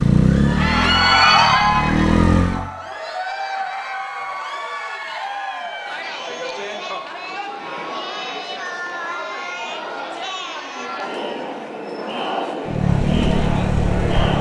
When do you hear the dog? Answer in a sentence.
You can't hear the dog here.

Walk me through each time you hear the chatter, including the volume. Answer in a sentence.
The chatter can be heard from 0.1 to 14.3 s, getting quieter.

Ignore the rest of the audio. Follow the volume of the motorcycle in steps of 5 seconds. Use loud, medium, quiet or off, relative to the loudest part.
loud, off, loud.